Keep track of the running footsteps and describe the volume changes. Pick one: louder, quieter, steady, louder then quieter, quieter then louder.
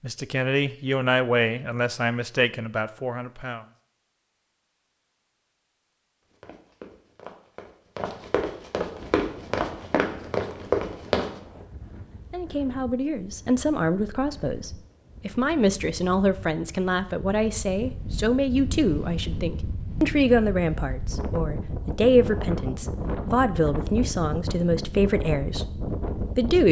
louder.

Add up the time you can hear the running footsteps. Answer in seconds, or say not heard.
5 s.